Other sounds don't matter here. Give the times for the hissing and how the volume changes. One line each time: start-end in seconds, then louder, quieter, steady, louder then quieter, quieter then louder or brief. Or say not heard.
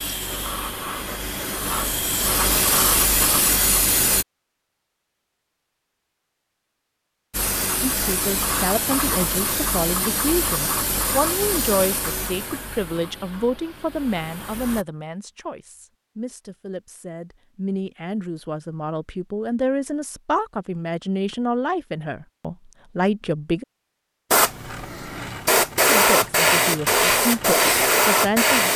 0.0-4.2 louder
7.3-14.8 quieter
24.3-28.7 louder.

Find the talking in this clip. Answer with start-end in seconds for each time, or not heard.
7.8-23.6, 25.9-28.7.